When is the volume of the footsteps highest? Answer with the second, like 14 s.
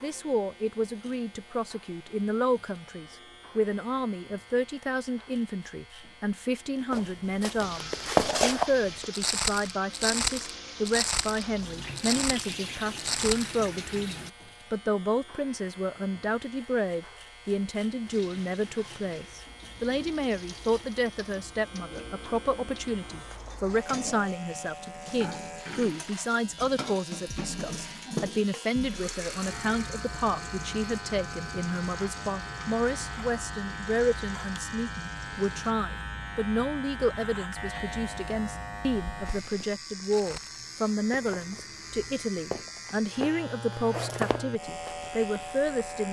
8 s.